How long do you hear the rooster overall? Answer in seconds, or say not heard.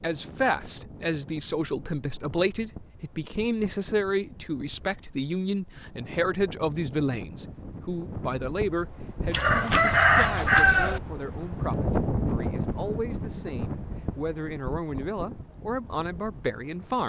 2 s.